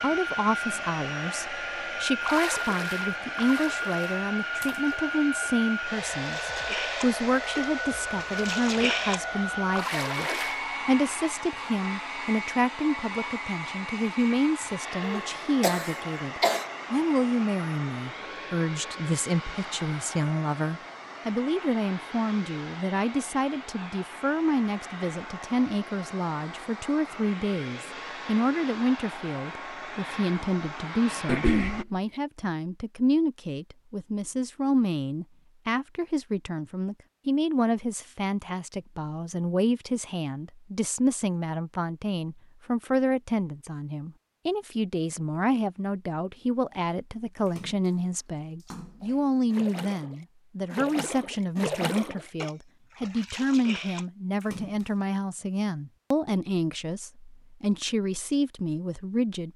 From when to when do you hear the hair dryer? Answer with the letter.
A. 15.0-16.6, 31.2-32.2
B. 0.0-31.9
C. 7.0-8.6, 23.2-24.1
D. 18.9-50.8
B.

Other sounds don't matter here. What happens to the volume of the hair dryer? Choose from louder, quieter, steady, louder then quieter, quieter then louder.
quieter.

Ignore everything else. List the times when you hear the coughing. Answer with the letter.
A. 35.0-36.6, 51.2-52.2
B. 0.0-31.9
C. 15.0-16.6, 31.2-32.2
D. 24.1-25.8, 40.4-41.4
C.